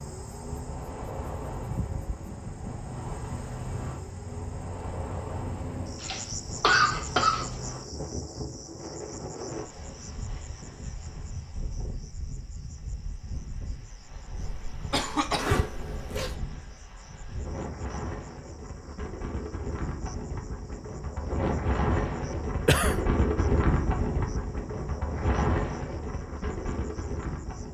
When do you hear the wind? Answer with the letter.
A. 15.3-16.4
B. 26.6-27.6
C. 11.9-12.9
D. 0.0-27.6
D.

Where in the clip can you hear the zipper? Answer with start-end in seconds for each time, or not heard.
15.3-16.4.